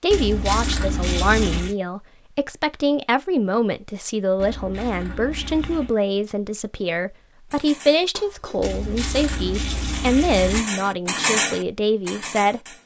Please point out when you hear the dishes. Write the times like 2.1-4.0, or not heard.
7.5-12.8.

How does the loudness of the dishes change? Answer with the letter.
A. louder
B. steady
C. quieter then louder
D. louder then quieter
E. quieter
D.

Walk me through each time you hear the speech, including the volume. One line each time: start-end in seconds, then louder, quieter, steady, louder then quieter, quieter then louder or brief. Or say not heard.
0.0-12.6 steady.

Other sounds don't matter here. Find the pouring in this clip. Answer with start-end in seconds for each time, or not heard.
0.1-1.8, 4.3-6.0, 8.6-10.7.